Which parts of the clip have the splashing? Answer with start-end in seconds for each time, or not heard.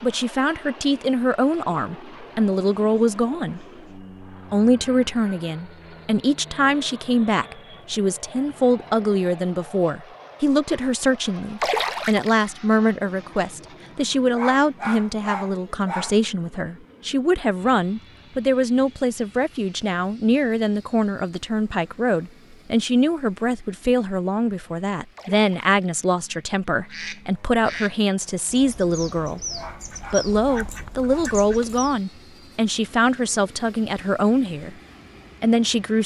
11.6-12.5, 25.1-26.1.